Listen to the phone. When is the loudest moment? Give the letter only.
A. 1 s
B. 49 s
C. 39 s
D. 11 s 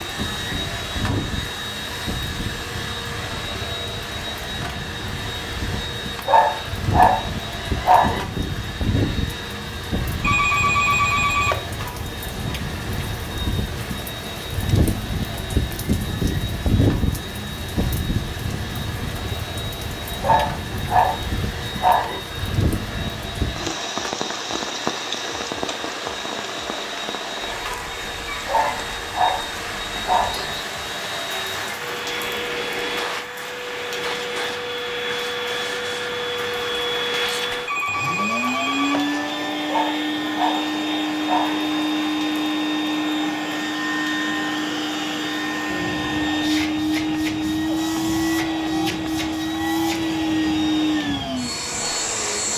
D.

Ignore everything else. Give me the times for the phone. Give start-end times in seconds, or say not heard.
10.2-11.7, 37.6-39.2.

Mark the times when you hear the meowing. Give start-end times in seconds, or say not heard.
not heard.